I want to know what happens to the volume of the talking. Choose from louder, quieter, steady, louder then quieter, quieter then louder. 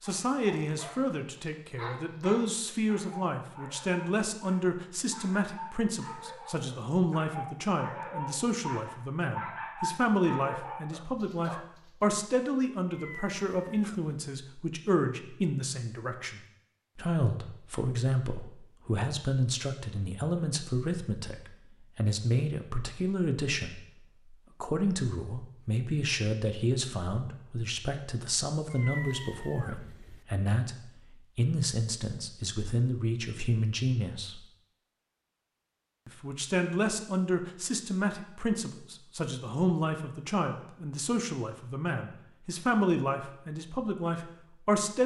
steady.